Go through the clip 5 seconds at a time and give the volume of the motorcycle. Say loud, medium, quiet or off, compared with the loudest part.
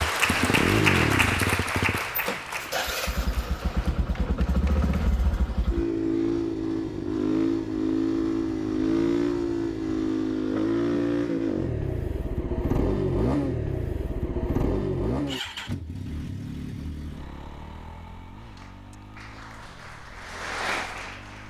loud, loud, loud, medium, quiet.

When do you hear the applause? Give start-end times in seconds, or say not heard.
0.0-5.1, 18.4-21.4.